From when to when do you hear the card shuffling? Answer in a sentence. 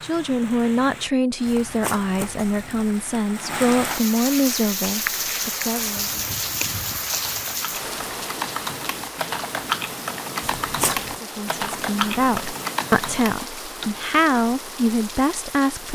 You can hear the card shuffling from 1.4 to 3.0 s and from 10.4 to 11.2 s.